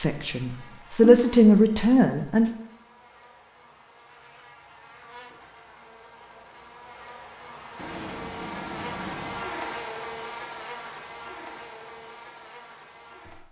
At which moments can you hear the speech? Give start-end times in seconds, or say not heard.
0.0-2.5.